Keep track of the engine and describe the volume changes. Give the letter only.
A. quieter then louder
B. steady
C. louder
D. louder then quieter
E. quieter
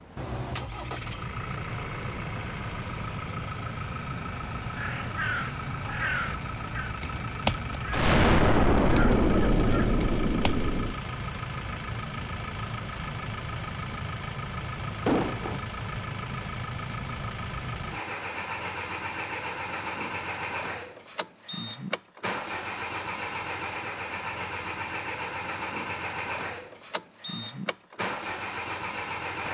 B.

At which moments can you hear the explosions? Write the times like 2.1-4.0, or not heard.
7.9-11.0, 15.1-15.6.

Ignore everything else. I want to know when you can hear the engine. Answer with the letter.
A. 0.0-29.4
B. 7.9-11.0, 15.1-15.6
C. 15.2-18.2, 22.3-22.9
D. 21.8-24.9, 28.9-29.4
A.